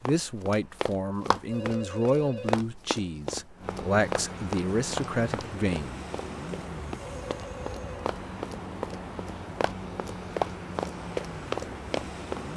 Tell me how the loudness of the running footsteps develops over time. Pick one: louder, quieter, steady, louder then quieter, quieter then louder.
quieter then louder.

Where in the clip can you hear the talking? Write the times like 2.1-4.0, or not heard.
0.0-6.0.